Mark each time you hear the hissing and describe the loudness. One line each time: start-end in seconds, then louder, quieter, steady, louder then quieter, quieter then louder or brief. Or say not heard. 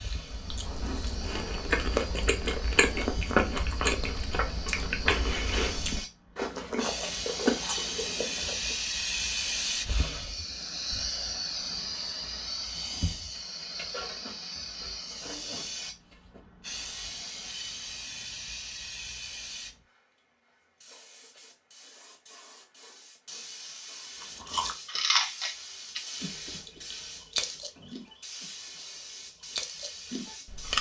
0.0-30.7 louder then quieter.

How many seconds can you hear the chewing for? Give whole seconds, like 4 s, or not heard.
15 s.